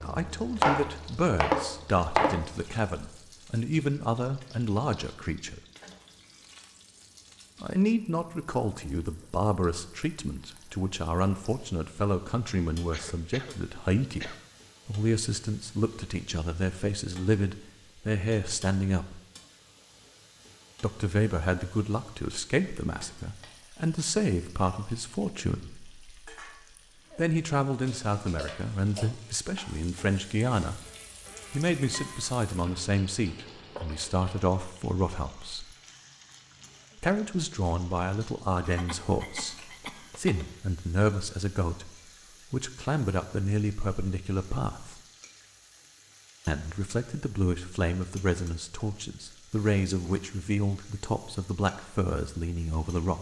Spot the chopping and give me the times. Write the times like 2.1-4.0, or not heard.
0.0-2.5.